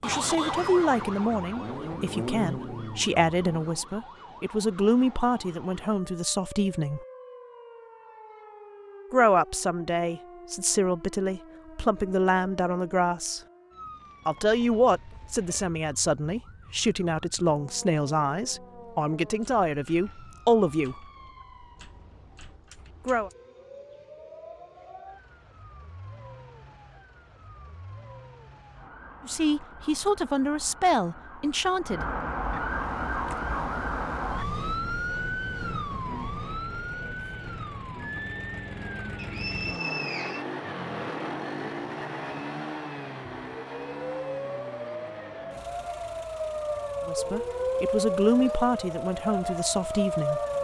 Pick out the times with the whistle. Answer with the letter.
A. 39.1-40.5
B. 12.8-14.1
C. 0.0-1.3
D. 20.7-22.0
A.